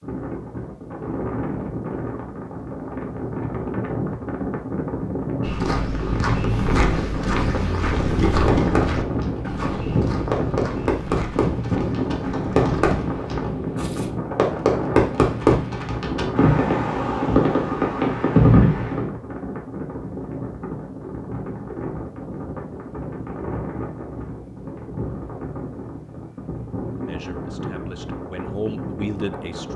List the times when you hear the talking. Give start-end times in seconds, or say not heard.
27.0-29.7.